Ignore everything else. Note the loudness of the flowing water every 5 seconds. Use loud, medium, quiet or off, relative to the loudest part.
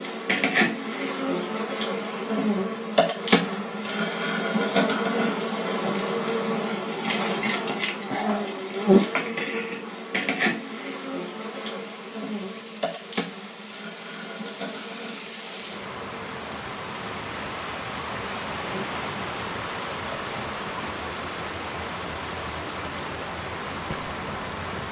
off, off, medium, loud, loud.